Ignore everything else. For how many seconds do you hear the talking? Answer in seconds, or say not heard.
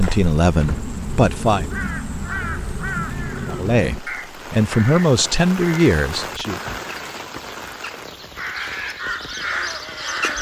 5 s.